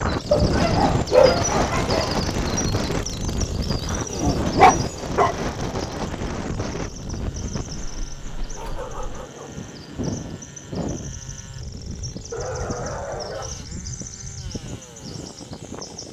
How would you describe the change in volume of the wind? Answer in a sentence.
The volume of the wind goes down.